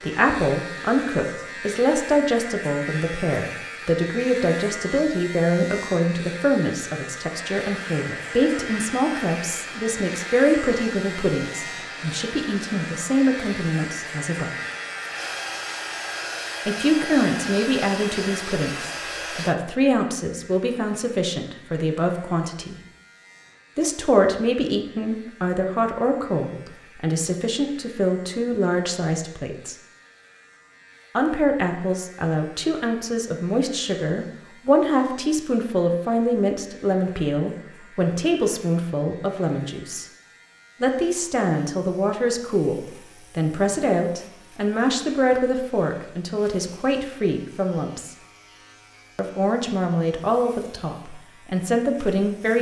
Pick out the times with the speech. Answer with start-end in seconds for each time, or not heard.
0.0-14.5, 16.6-22.8, 23.8-29.8, 31.1-40.0, 40.8-48.1, 49.1-52.5.